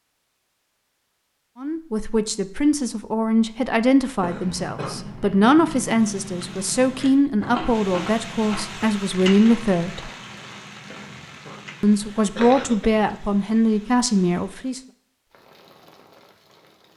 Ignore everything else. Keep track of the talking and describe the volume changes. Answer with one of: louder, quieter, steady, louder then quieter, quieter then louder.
steady.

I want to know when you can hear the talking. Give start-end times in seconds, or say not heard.
1.6-10.1, 11.8-14.8.